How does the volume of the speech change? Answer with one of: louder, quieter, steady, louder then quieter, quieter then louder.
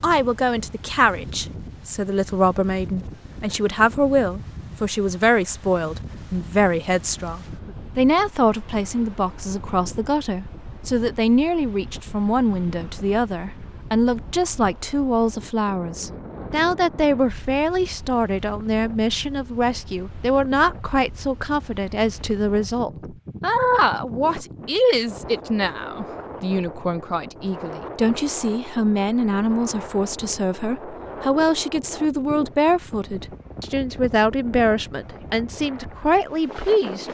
steady.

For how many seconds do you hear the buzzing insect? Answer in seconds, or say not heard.
not heard.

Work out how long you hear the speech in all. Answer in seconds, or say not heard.
37 s.